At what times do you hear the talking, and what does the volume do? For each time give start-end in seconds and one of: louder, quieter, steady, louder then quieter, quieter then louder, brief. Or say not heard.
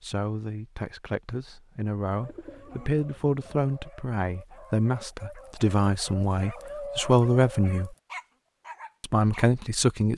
0.0-7.9 louder
9.0-10.1 brief.